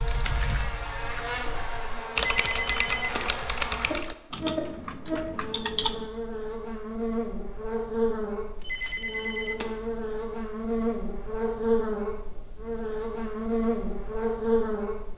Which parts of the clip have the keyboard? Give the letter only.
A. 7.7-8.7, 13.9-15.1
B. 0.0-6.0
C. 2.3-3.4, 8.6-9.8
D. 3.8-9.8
B.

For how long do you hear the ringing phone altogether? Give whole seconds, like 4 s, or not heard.
2 s.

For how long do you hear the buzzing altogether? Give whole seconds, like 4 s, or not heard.
15 s.